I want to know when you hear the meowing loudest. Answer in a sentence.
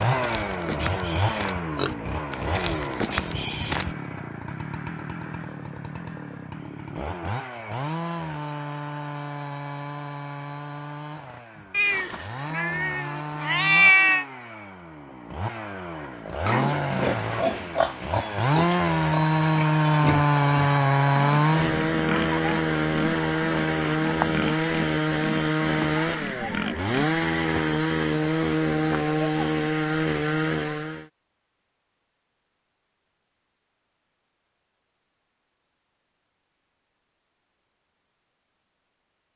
The loudest moment of the meowing is at 14 seconds.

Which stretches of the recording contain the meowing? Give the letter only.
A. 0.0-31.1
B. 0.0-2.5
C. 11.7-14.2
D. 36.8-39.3
C.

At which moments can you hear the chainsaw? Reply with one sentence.
You can hear the chainsaw from 0.0 to 31.1 s.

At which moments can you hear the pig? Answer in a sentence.
The pig can be heard from 0.0 to 4.0 s and from 16.4 to 27.2 s.